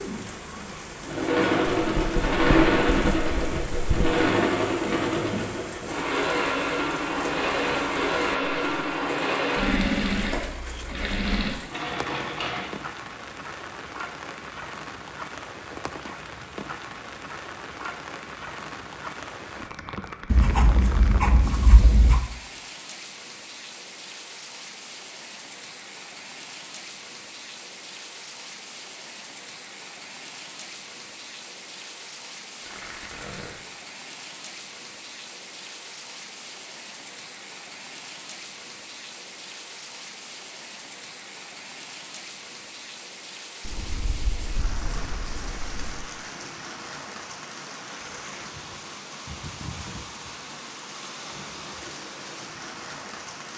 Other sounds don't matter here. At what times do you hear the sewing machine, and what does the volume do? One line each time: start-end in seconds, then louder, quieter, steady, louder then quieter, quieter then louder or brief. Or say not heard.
0.0-12.7 quieter.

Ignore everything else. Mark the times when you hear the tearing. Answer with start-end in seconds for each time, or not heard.
32.6-33.5.